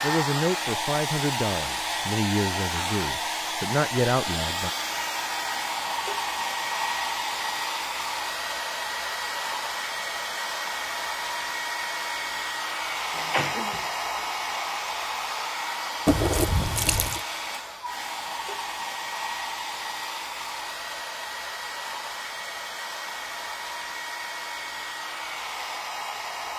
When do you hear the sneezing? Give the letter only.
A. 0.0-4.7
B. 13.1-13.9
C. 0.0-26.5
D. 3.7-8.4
B.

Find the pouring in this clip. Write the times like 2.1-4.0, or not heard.
16.1-17.2.